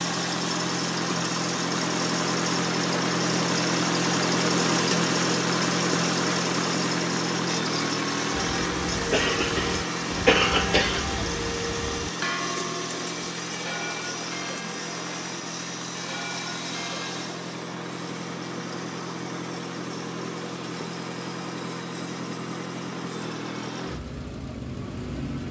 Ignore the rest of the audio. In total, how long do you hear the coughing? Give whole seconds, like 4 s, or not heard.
2 s.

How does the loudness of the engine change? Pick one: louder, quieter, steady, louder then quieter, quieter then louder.
quieter.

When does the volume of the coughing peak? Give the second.
10 s.